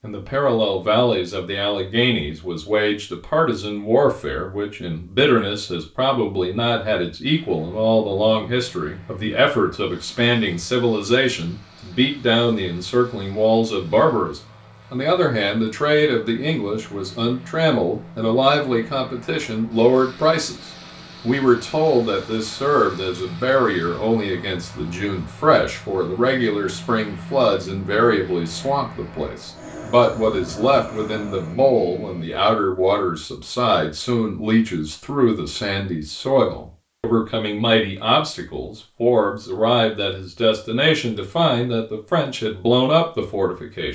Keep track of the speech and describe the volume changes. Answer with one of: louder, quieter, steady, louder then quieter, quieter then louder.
steady.